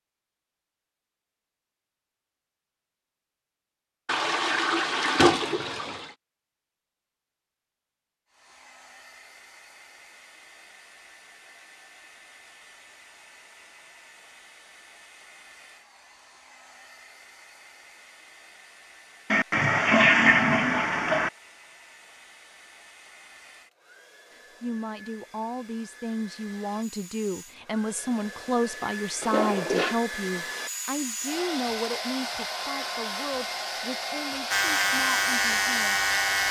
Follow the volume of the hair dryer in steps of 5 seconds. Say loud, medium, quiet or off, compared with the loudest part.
off, quiet, quiet, quiet, quiet, medium, loud, loud.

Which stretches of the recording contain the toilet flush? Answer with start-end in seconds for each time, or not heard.
4.0-6.1, 19.3-21.3, 29.2-29.9.